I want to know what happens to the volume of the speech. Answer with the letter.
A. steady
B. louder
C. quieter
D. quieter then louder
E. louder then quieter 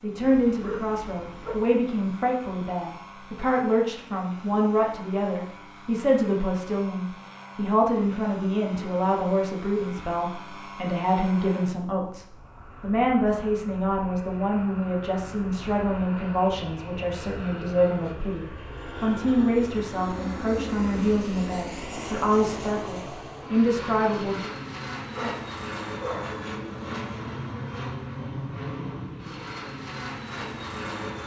A.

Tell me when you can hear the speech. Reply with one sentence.
You can hear the speech from 0.0 to 24.5 s.